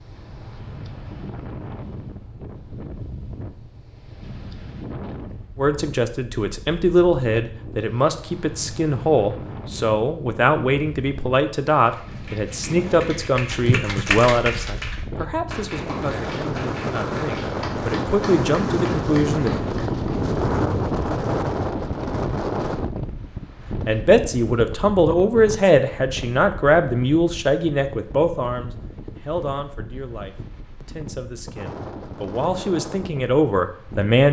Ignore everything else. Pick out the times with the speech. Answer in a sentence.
You can hear the speech from 5.5 to 19.5 s and from 23.9 to 34.2 s.